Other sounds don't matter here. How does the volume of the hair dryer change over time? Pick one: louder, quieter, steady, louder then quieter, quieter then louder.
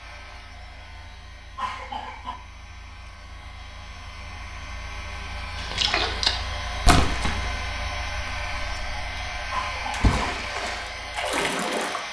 louder.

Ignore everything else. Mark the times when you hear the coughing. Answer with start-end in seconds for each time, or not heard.
1.6-2.4, 9.5-10.2.